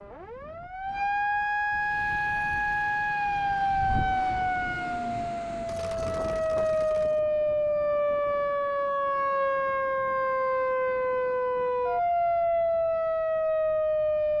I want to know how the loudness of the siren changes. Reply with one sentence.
The volume of the siren stays about the same.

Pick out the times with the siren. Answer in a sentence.
The siren can be heard from 0.0 to 14.3 s.